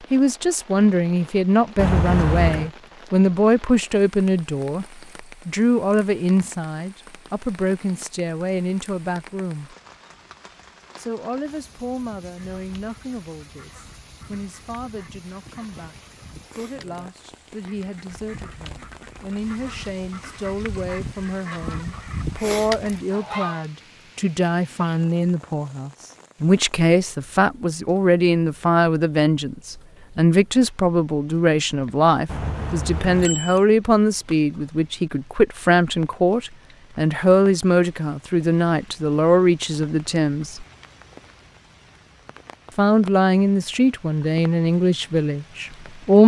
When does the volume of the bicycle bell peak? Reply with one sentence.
The loudest moment of the bicycle bell is at 2 seconds.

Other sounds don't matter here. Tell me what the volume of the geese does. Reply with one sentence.
The loudness of the geese goes up.